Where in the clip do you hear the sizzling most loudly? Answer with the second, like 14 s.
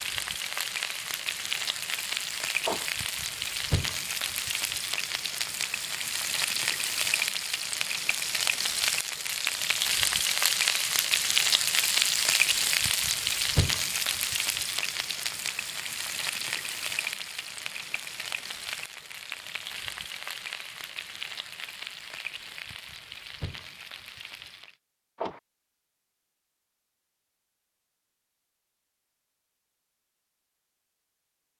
12 s.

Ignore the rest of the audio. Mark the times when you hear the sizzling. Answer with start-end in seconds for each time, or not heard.
0.0-24.8.